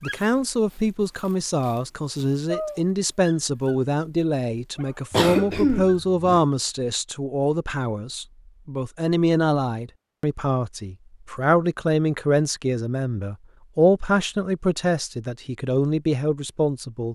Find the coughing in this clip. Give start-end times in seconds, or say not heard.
5.1-6.4.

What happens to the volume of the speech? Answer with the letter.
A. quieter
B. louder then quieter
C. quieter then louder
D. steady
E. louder
D.